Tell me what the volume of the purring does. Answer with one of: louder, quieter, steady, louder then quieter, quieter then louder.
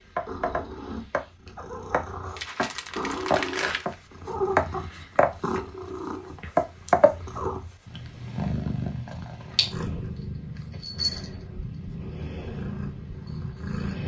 louder then quieter.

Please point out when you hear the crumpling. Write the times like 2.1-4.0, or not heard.
2.4-4.0.